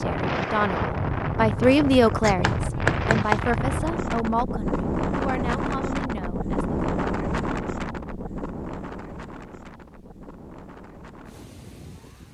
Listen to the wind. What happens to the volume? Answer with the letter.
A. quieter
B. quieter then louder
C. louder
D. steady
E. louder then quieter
A.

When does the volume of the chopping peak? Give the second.
3 s.